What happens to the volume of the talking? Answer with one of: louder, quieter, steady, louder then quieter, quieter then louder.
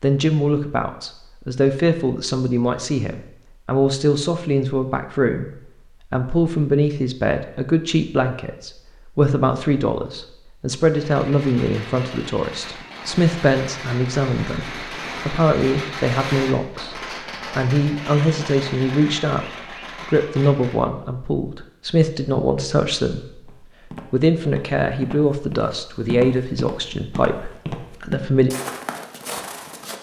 steady.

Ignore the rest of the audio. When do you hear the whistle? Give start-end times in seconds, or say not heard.
not heard.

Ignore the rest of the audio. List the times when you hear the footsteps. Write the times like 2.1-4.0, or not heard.
23.4-29.9.